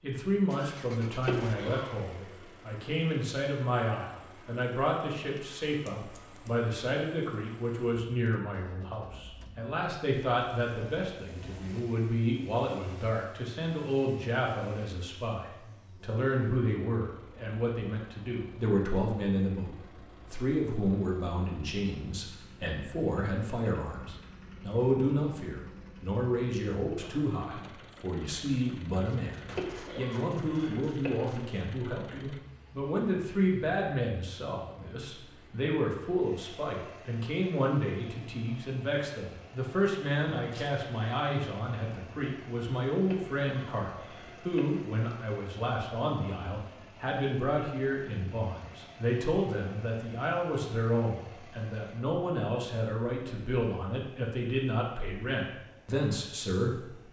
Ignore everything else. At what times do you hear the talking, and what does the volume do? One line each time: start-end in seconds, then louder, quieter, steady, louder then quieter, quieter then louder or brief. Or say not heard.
0.0-57.0 steady.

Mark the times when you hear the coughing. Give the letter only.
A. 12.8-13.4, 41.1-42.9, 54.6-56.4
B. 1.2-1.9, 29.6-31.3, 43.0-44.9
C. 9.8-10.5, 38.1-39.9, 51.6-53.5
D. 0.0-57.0
B.